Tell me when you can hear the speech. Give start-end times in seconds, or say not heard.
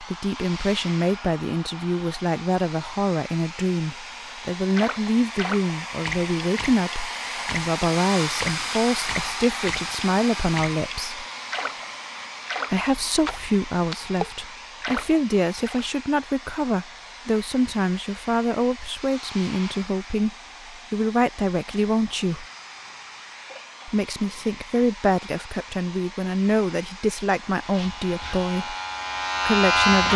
0.0-11.2, 12.7-22.4, 23.9-28.8, 29.4-30.1.